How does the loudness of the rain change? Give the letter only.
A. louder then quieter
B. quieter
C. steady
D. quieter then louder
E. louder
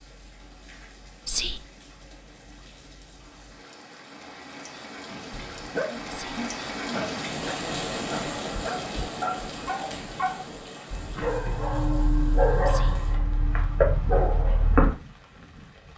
A.